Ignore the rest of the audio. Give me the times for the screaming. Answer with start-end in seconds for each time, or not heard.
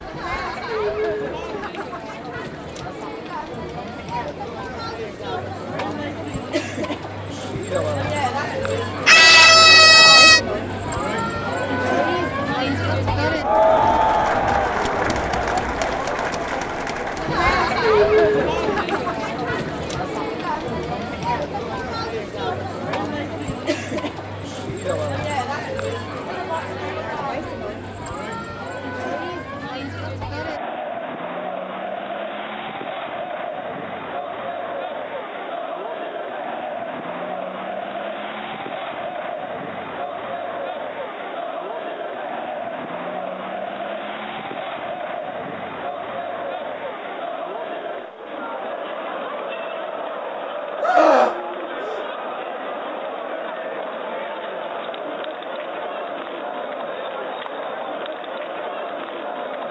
9.1-10.4, 50.8-52.0.